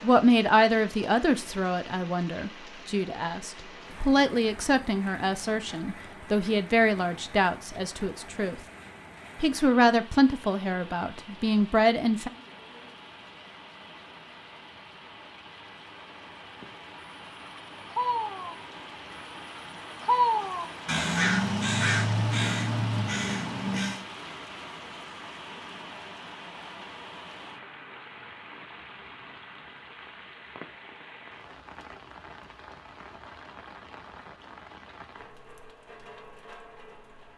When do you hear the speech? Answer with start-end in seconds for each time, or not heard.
0.0-8.6, 9.4-12.3.